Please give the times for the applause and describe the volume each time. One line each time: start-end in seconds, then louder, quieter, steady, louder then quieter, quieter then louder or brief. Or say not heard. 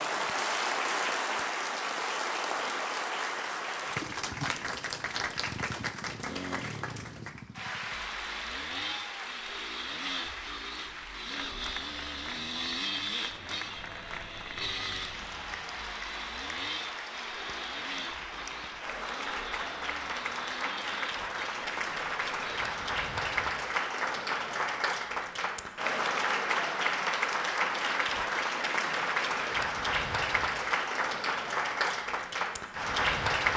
0.0-33.5 quieter then louder.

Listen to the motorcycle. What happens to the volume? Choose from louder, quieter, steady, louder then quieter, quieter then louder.
louder then quieter.